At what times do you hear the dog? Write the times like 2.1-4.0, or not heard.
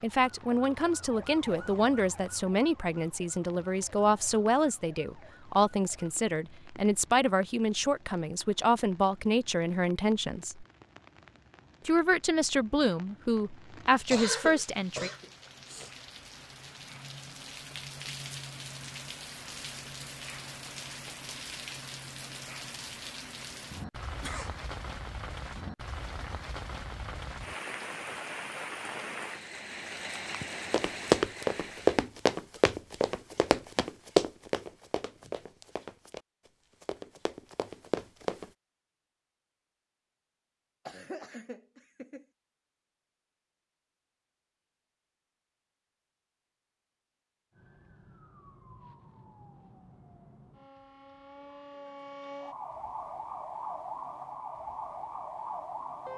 not heard.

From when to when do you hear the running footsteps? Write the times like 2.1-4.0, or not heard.
30.7-36.2, 36.8-38.5.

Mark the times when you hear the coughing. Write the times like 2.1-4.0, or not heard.
14.1-15.9, 24.1-24.5, 40.9-42.2.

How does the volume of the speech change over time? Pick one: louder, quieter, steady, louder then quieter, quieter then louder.
steady.